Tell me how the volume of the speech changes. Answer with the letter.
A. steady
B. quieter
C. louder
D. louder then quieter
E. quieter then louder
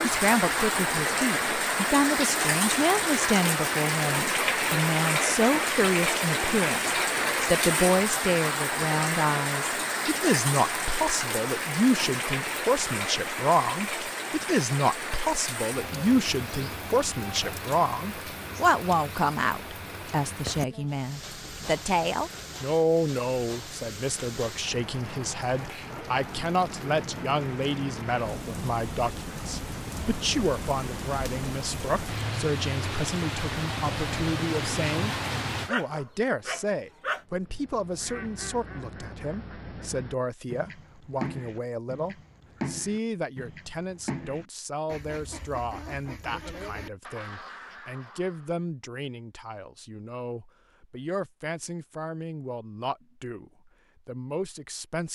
B.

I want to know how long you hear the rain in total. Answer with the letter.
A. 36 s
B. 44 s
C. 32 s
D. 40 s
A.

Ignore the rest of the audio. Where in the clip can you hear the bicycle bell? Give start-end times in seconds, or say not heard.
not heard.